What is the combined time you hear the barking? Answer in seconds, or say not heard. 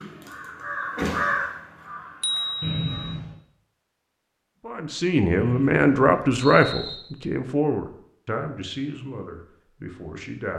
not heard.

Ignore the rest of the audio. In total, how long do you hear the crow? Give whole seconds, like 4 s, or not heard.
3 s.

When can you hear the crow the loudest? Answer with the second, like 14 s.
1 s.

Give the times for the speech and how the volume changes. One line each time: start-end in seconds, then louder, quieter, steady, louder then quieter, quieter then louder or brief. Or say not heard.
4.6-10.5 quieter.